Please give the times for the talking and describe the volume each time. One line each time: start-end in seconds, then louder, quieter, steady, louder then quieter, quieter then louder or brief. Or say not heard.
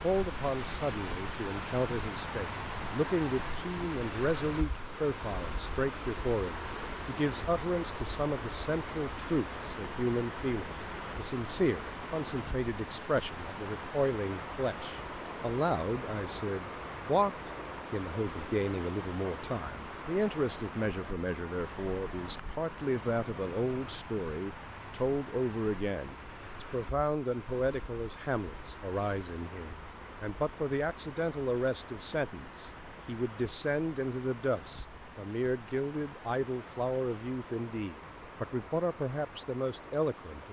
0.0-40.4 steady.